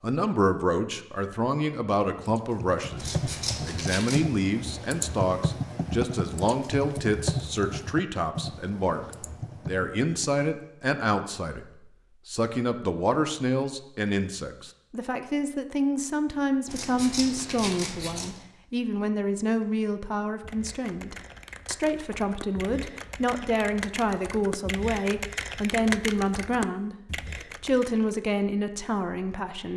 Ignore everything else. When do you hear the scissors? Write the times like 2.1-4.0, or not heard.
3.0-4.3, 16.6-18.4.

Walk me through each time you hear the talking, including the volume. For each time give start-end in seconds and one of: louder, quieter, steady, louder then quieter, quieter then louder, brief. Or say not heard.
0.0-11.7 steady
12.2-29.7 steady.